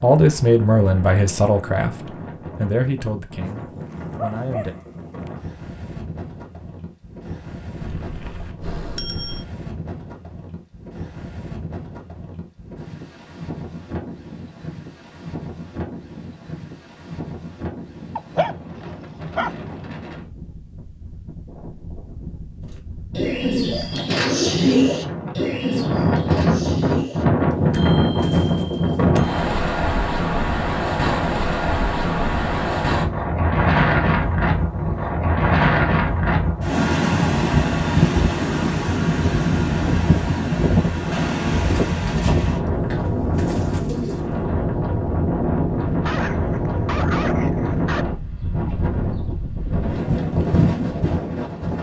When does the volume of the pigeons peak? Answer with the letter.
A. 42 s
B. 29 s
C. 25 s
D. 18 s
C.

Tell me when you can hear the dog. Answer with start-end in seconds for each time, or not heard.
3.9-5.3, 18.1-19.8, 46.0-48.0.